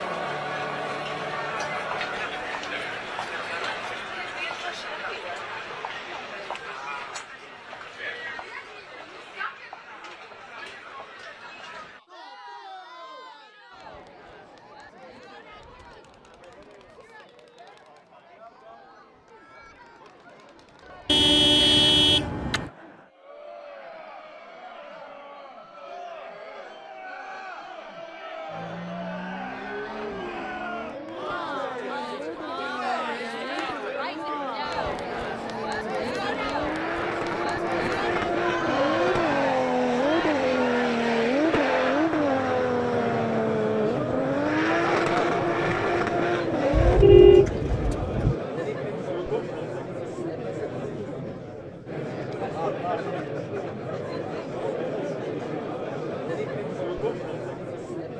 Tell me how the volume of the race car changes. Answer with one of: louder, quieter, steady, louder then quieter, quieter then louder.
louder.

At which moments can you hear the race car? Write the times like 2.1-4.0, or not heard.
28.4-47.0.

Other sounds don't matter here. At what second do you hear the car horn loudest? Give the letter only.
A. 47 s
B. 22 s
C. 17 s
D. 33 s
A.